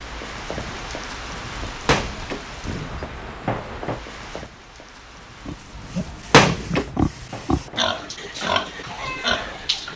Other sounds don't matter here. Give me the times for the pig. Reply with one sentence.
You can hear the pig from 5.5 to 9.9 s.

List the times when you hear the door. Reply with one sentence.
The door can be heard from 1.9 to 3.2 s and from 6.1 to 6.8 s.